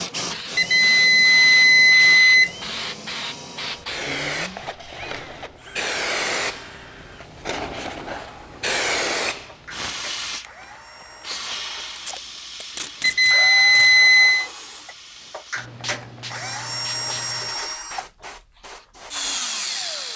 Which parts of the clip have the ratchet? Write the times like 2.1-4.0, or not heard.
not heard.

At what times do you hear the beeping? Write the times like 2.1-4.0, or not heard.
0.6-2.5, 13.0-14.5.